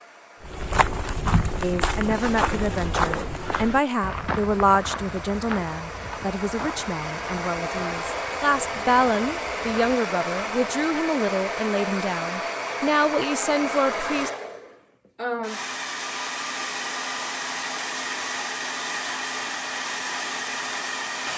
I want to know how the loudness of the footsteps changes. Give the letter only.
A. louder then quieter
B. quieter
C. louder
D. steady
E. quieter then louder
B.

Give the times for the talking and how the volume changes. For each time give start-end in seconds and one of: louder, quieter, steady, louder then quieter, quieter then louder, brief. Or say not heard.
1.6-14.3 steady.